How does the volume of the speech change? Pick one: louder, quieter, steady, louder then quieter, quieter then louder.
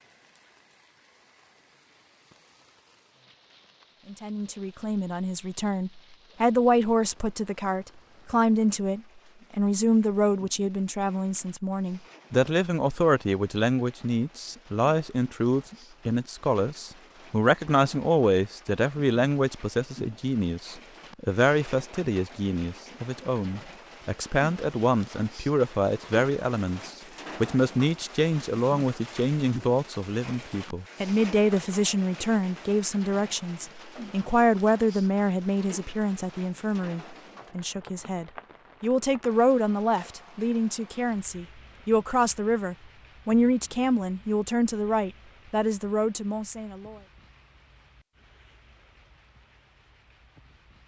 steady.